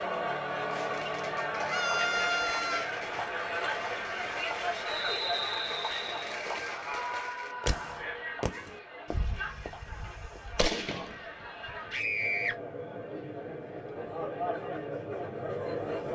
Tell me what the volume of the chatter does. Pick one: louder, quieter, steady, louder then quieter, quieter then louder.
quieter then louder.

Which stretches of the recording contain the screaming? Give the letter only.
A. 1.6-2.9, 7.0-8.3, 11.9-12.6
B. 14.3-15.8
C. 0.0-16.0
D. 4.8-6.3
A.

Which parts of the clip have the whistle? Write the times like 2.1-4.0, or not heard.
4.8-6.3.